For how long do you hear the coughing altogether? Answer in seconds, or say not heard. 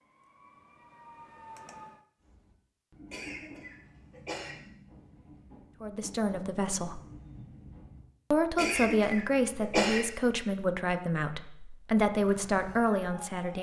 3 s.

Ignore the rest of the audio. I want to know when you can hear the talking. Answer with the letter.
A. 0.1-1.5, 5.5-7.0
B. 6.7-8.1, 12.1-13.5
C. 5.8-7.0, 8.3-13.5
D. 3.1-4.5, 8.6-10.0
C.